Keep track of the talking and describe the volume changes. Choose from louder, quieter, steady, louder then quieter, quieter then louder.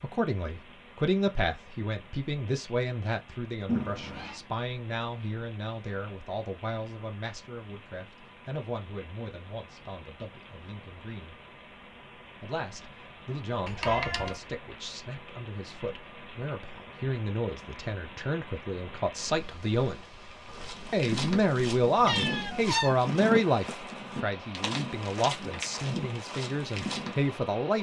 quieter then louder.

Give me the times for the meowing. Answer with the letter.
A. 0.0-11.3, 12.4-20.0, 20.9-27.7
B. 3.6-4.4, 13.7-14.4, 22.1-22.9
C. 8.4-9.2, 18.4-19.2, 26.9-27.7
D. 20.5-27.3
B.